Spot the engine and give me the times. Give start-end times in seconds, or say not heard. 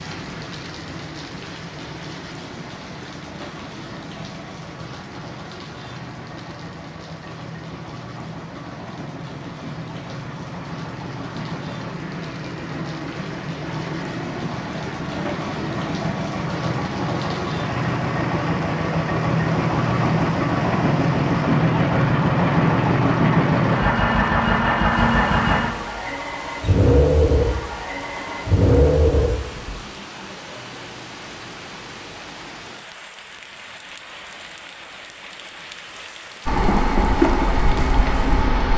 0.0-29.8, 36.5-38.7.